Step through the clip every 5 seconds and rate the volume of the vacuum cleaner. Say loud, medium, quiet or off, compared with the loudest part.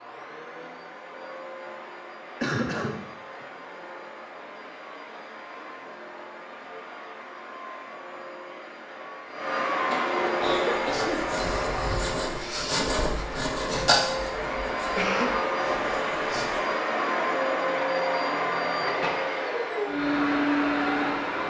quiet, medium, medium, loud, loud.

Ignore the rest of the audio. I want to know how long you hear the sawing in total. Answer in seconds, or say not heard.
6 s.